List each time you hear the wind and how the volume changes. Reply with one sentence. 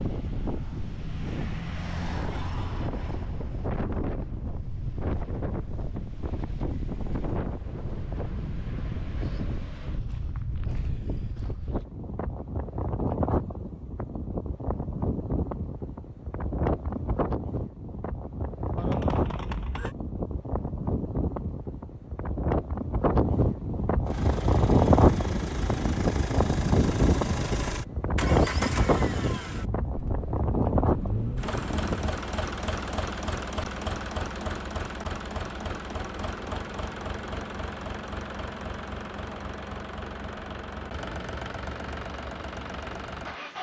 You can hear the wind from 0.0 to 32.1 s, getting louder.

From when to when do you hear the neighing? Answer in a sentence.
You can hear the neighing from 18.8 to 19.9 s.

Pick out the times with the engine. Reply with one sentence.
The engine can be heard from 24.1 to 43.5 s.